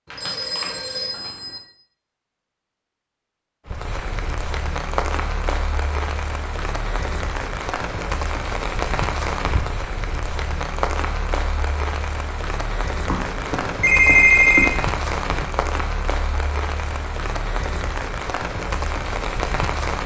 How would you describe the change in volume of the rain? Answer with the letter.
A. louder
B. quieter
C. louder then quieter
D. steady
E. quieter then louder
D.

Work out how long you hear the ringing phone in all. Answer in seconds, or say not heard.
3 s.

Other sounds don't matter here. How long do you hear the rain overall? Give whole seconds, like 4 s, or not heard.
16 s.